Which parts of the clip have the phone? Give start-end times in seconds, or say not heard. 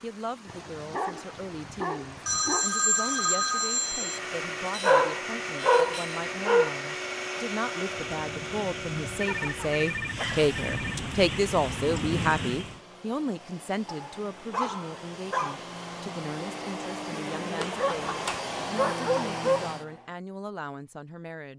2.2-4.2, 9.2-11.2, 17.6-18.5.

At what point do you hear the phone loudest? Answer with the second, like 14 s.
3 s.